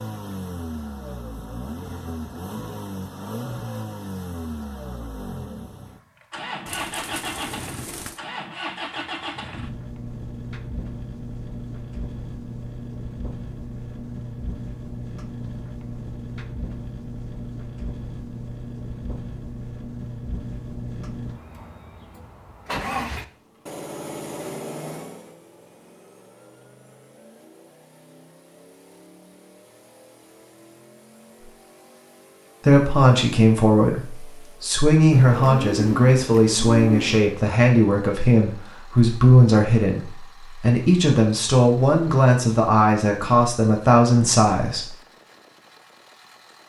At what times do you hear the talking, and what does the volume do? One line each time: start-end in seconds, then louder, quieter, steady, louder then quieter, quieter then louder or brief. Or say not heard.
32.6-45.0 steady.